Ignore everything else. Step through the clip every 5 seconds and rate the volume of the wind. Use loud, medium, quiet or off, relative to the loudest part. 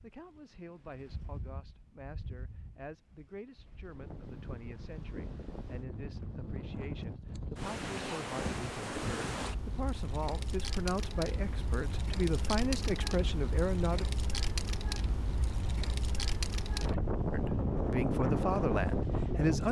quiet, medium, medium, loud.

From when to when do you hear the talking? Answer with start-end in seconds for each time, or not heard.
0.0-14.1, 17.3-19.6.